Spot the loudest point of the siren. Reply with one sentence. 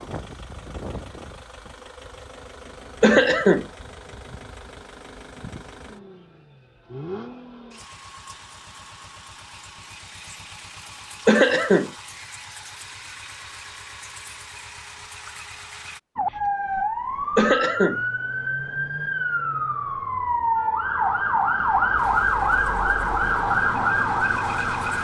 The loudest moment of the siren is at 22 seconds.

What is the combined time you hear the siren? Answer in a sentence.
You can hear the siren for 9 seconds altogether.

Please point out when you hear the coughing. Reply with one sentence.
The coughing can be heard from 3.0 to 3.6 s, from 11.2 to 11.9 s and from 17.4 to 18.0 s.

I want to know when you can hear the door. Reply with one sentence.
The door can't be heard in this clip.